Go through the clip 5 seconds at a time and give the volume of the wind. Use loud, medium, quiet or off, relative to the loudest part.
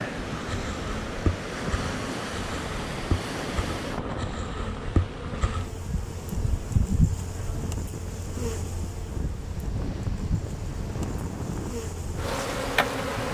loud, medium, loud.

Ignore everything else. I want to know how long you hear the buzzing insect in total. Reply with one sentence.
You can hear the buzzing insect for 13 seconds altogether.